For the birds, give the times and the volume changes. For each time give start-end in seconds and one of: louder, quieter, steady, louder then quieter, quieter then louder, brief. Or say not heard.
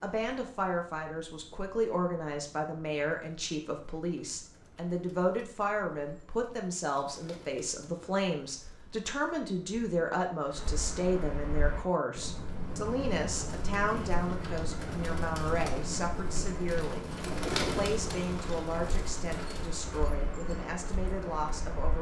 0.0-21.9 louder.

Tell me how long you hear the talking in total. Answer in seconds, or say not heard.
22 s.